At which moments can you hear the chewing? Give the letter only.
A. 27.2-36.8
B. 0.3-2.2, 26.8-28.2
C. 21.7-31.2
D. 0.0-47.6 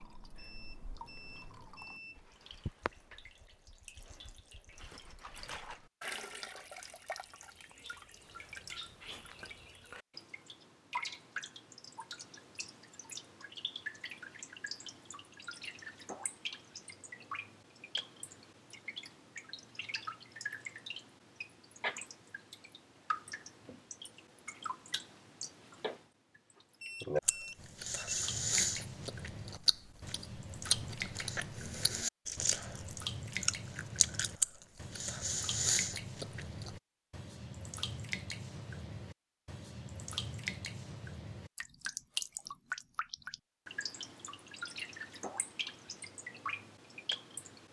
A.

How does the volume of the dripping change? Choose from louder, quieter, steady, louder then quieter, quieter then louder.
louder.